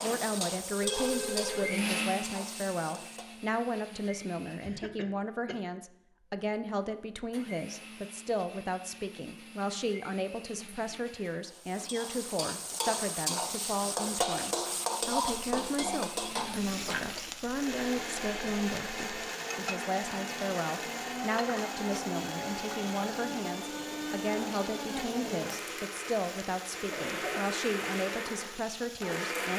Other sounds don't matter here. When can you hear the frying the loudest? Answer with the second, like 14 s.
15 s.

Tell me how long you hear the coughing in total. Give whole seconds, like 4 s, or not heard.
2 s.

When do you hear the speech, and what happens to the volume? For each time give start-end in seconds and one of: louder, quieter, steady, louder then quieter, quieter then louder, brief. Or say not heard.
0.0-29.5 steady.